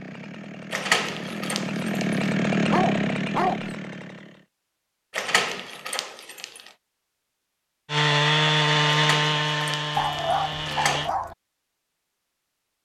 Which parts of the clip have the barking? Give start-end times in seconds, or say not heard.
2.7-3.8, 9.9-11.3.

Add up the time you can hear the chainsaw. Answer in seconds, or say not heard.
8 s.